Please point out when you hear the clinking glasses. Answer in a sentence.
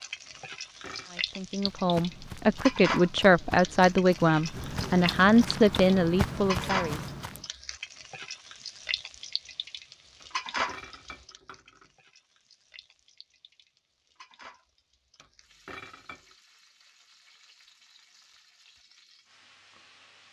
You can hear the clinking glasses from 0.3 to 1.1 s, from 10.2 to 11.9 s and from 15.2 to 16.4 s.